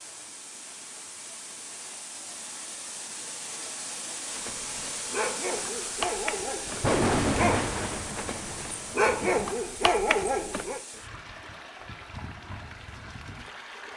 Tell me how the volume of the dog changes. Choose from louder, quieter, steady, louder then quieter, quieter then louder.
louder.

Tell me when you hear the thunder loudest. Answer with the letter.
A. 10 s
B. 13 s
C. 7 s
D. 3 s
C.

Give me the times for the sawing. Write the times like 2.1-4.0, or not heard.
not heard.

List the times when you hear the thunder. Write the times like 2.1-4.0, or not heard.
6.7-9.5.